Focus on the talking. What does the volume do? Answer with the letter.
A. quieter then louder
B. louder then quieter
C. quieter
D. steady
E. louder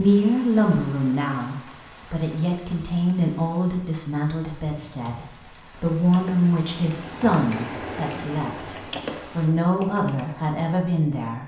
D.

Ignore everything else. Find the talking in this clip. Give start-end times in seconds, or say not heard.
0.0-11.4.